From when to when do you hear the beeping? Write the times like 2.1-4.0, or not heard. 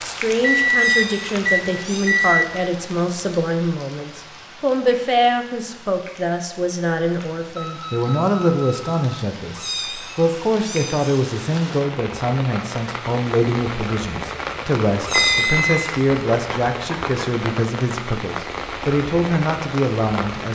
0.4-2.5, 7.5-8.8, 15.1-15.9.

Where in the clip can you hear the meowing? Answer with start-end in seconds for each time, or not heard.
0.7-2.5, 9.5-11.2, 15.0-16.0.